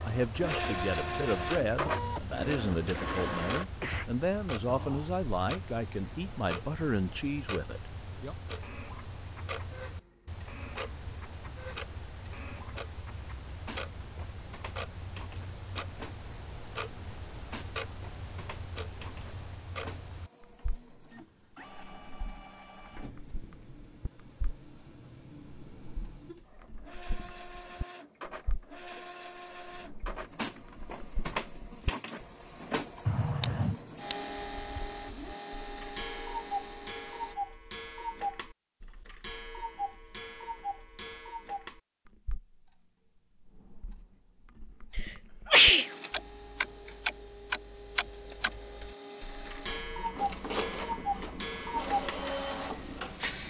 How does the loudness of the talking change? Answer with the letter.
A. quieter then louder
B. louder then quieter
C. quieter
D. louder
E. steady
E.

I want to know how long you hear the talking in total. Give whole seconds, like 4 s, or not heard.
8 s.